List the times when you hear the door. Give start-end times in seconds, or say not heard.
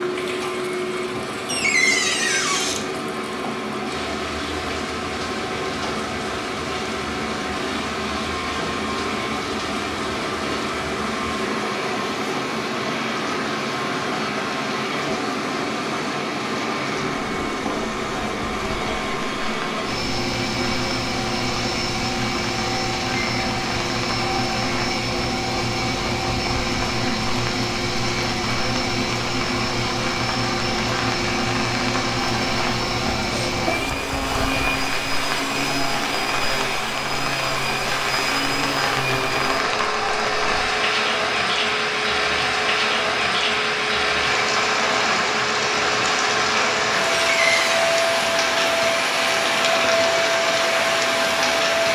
1.4-2.9, 47.3-47.9.